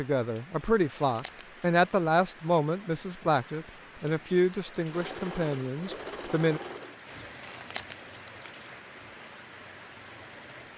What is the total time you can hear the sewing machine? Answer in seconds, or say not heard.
6 s.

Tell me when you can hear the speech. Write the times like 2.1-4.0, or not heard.
0.0-6.6.